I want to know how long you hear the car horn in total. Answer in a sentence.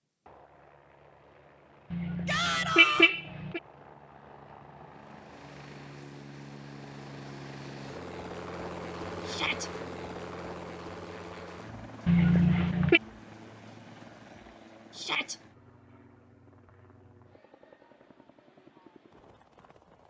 The car horn can be heard for 3 seconds in total.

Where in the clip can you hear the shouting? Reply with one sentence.
The shouting can be heard from 2.2 to 3.1 s, from 9.2 to 9.7 s and from 14.9 to 15.3 s.